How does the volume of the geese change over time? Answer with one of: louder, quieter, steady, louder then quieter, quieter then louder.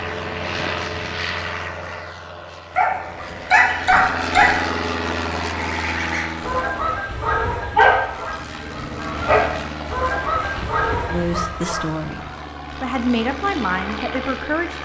quieter then louder.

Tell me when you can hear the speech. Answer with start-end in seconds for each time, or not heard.
11.1-14.7.